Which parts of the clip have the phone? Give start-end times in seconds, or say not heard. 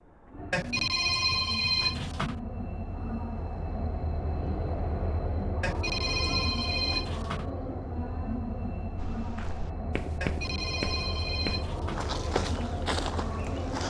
0.5-2.4, 5.6-7.5, 10.2-12.1.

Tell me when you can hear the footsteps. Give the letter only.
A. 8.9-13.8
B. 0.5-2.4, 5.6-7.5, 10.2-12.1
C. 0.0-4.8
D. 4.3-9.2
A.